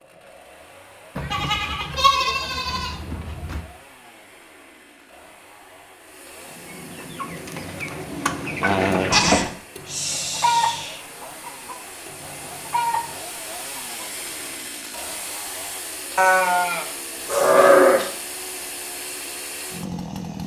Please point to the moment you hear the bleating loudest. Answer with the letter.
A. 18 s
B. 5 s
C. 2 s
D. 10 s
A.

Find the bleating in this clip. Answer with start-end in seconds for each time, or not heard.
1.1-3.6, 9.1-11.0, 16.1-18.1.